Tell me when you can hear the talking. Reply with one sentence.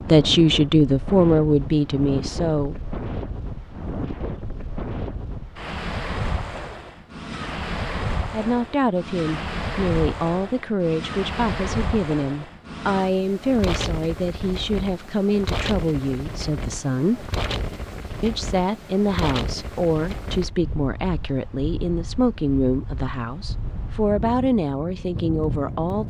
The talking can be heard from 0.1 to 2.8 s, from 8.3 to 17.3 s and from 18.2 to 26.0 s.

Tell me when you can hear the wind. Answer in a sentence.
You can hear the wind from 0.0 to 26.0 s.